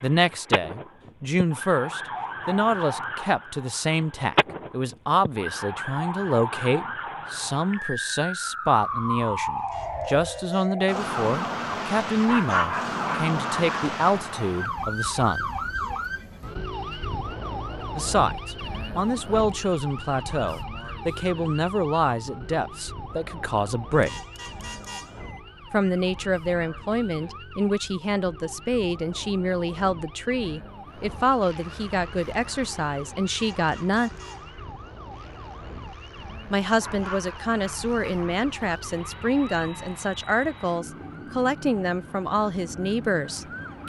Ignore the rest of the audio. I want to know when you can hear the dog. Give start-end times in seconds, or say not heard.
12.2-13.9, 36.8-38.4.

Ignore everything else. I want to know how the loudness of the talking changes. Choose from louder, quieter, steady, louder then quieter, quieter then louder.
steady.